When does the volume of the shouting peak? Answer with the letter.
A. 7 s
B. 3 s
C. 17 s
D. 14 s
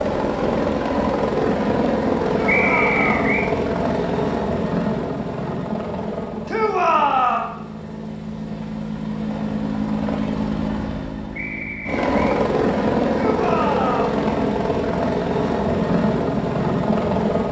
A.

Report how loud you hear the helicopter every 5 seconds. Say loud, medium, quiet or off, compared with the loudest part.
loud, medium, loud, loud.